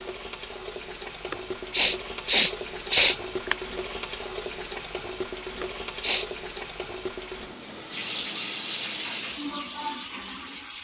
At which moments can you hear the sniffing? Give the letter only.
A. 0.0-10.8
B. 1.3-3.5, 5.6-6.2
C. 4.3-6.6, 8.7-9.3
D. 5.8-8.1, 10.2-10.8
B.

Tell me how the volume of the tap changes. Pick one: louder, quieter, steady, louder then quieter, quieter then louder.
steady.